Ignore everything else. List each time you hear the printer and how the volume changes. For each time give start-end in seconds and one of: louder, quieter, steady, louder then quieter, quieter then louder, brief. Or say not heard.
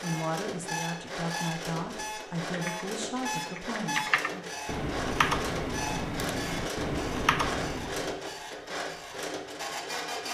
0.0-10.2 steady.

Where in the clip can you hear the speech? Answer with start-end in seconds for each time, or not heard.
0.0-4.5.